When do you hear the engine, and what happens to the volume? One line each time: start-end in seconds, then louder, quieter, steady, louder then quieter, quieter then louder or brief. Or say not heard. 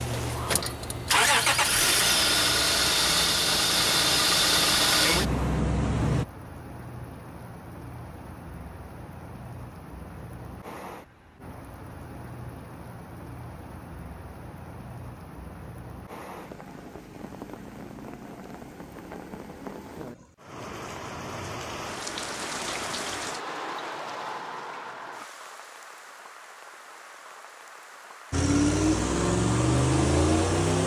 0.0-6.2 steady
28.3-30.8 brief.